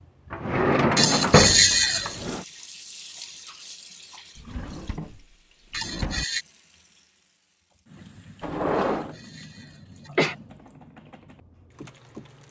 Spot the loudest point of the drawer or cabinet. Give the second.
1 s.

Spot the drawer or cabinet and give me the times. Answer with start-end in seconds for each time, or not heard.
0.3-2.4, 4.3-6.2, 8.4-9.2.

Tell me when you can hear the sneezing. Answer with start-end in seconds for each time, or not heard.
0.9-2.1, 5.7-6.5, 8.8-10.3.